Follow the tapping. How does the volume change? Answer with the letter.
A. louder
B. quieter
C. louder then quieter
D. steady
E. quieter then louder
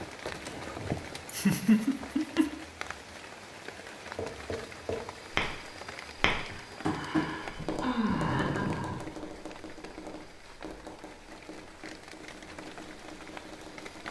B.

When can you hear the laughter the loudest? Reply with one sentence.
The volume of the laughter peaks at 2 seconds.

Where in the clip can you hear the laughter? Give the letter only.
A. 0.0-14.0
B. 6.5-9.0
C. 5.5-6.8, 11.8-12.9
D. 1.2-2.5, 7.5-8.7
D.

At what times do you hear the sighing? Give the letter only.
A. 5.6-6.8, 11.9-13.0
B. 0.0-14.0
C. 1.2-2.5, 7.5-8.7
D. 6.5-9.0
D.